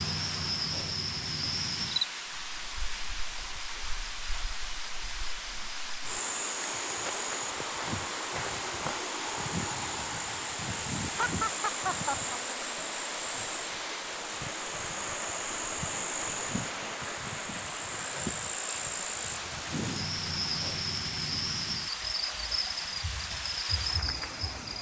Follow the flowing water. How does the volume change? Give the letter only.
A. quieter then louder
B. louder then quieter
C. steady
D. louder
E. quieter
C.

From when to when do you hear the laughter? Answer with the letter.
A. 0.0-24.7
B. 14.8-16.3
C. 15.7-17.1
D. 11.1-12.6
D.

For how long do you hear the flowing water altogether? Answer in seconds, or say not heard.
25 s.